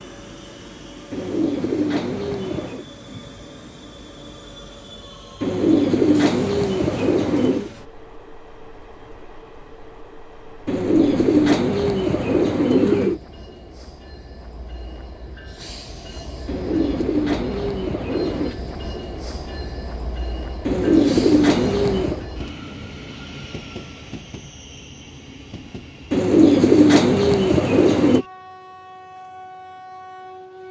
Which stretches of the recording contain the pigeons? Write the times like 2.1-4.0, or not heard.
1.1-2.9, 5.4-7.7, 10.7-13.2, 16.4-18.6, 20.6-22.2, 26.1-28.2.